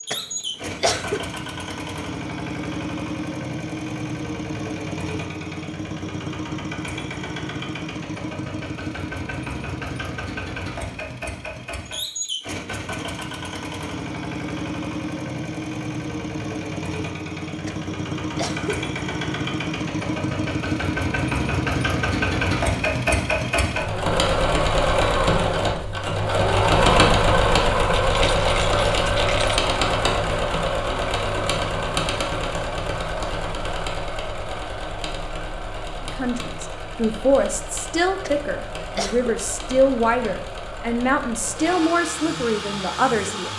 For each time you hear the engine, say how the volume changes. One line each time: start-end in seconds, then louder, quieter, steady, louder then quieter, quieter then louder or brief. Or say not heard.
0.0-43.5 louder then quieter.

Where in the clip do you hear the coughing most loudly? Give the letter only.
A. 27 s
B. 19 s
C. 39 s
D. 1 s
D.